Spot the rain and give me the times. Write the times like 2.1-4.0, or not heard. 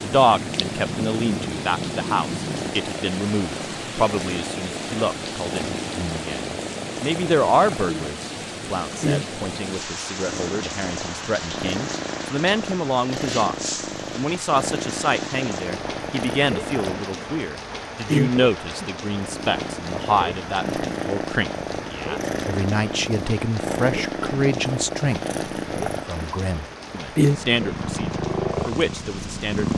0.0-29.7.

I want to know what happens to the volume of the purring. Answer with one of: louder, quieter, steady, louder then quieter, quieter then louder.
louder.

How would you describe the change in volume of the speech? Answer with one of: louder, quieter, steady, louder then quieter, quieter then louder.
steady.